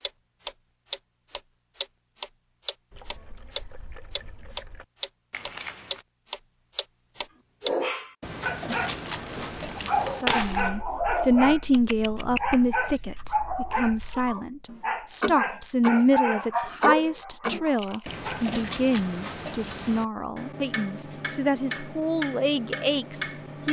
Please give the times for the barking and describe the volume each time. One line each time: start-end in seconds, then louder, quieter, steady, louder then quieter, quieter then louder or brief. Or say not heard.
7.6-18.4 steady.